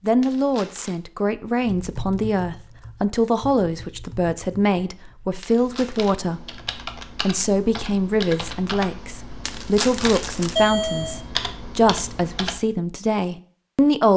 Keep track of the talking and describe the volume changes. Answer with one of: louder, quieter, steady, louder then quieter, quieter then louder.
steady.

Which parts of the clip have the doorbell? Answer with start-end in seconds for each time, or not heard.
10.6-11.2.